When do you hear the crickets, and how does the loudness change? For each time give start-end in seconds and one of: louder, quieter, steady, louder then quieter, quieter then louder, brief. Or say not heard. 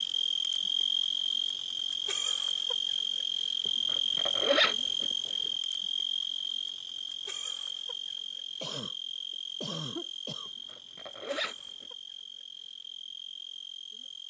0.0-14.2 quieter.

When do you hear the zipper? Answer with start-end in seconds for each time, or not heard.
3.6-5.1, 10.4-11.8.